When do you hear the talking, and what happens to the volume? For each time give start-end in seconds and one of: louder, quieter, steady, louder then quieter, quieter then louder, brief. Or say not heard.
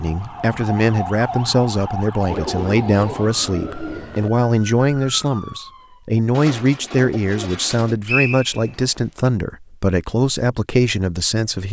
0.0-11.6 steady.